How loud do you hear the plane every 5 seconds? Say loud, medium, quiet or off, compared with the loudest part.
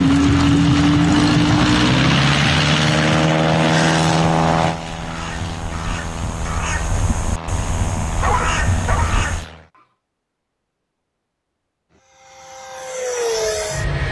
loud, quiet, medium.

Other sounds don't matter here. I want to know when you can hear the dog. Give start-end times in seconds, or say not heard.
8.2-9.8.